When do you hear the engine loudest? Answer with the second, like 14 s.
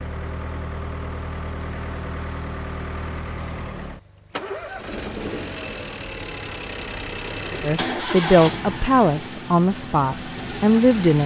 8 s.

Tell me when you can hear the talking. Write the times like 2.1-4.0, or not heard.
7.6-11.2.